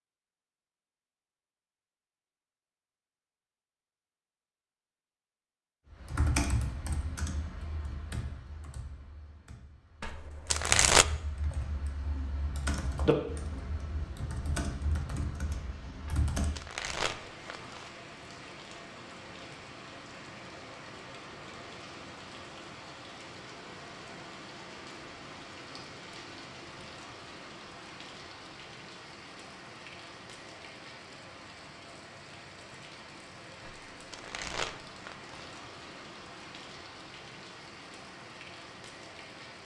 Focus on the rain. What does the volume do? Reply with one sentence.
The volume of the rain stays about the same.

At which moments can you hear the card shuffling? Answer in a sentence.
You can hear the card shuffling from 10.0 to 11.1 s, from 16.1 to 17.9 s and from 33.6 to 35.4 s.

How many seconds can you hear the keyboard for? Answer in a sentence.
You can hear the keyboard for 11 seconds altogether.